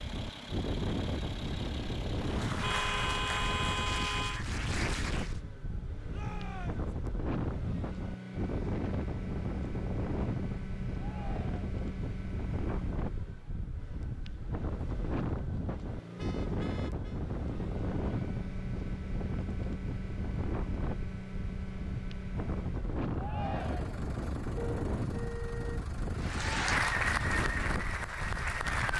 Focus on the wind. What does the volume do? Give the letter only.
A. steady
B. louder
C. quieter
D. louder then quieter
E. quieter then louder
A.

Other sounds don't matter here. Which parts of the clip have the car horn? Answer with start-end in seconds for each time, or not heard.
2.6-4.5, 16.1-17.2, 24.6-25.9.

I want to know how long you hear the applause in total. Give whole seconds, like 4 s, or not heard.
6 s.